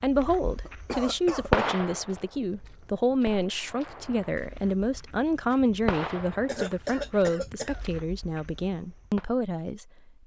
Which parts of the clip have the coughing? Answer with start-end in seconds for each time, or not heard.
0.7-1.7, 6.5-7.8.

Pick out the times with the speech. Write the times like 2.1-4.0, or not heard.
0.0-10.2.